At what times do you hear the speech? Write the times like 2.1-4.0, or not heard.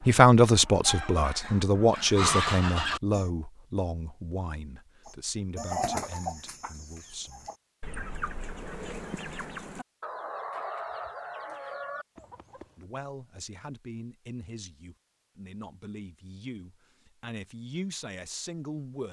0.0-7.5, 12.8-19.0.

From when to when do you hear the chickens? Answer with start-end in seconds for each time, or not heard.
0.0-3.2, 5.0-12.7.